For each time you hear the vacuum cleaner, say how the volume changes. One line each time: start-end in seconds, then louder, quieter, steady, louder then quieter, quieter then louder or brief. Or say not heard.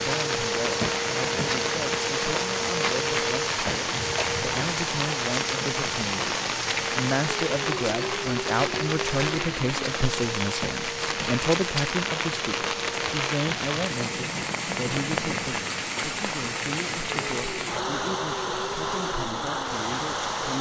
0.0-20.5 quieter.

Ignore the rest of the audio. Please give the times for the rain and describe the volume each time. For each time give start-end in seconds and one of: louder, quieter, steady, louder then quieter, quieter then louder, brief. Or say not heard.
0.0-20.5 steady.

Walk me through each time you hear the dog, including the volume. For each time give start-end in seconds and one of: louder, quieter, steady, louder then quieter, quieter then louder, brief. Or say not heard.
not heard.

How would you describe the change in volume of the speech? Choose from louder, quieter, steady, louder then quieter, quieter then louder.
louder then quieter.